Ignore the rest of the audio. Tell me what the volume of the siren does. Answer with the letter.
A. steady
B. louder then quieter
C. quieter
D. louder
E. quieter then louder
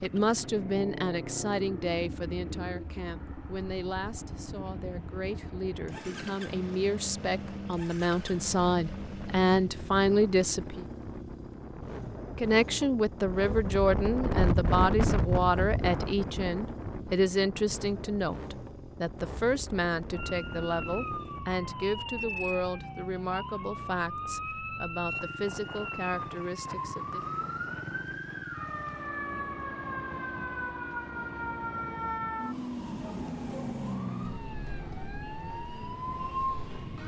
A.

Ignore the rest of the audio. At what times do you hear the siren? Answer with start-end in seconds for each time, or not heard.
20.1-37.0.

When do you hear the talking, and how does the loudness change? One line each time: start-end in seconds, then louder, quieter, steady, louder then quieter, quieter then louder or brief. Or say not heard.
0.0-10.8 quieter then louder
12.3-27.2 quieter.